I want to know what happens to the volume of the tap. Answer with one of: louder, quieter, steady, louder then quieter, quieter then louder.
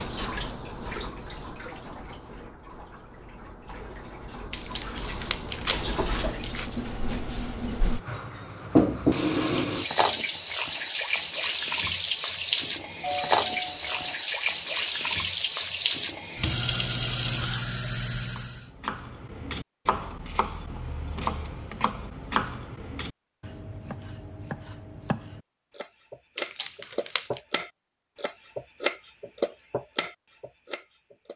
louder.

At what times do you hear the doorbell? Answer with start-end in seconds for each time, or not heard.
13.0-14.2.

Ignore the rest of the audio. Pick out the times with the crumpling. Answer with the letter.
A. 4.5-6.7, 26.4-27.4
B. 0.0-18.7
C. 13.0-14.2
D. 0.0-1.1
A.